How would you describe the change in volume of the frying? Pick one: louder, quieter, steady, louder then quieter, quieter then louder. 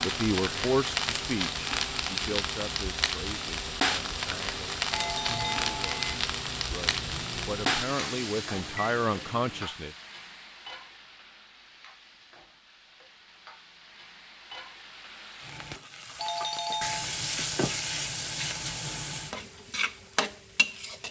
quieter then louder.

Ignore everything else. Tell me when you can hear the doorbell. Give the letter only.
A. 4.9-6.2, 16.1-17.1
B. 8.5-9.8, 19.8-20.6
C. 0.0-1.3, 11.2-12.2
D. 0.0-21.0
A.